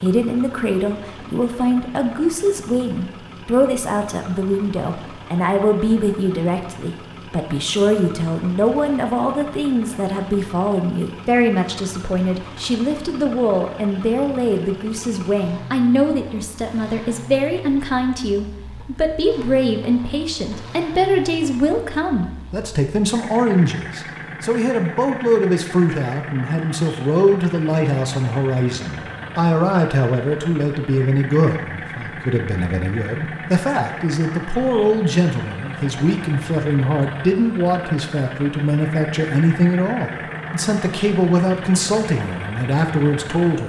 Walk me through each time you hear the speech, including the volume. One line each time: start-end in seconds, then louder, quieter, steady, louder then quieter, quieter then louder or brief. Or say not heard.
0.0-43.6 steady.